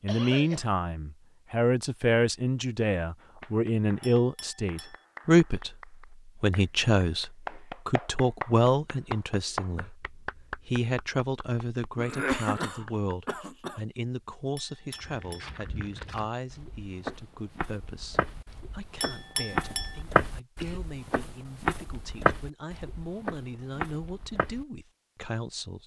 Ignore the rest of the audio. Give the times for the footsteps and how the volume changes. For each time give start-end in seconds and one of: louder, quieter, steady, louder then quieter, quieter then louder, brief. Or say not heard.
14.9-24.6 louder then quieter.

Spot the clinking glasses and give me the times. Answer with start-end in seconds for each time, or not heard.
4.0-5.0, 14.6-15.6, 19.0-20.0.